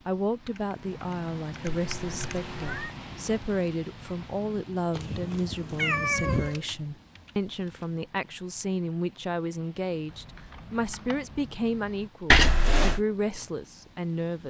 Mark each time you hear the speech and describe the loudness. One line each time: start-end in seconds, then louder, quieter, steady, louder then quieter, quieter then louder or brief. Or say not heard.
0.1-14.4 steady.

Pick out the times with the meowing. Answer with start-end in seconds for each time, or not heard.
1.7-3.0, 4.9-6.6, 12.3-13.0.